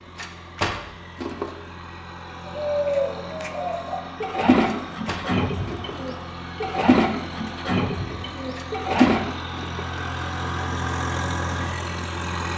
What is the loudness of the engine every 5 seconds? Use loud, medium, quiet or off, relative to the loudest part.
medium, medium, loud.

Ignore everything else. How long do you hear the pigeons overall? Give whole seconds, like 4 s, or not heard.
7 s.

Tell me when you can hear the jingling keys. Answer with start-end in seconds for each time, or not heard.
0.1-1.6, 4.7-6.2, 8.6-10.1.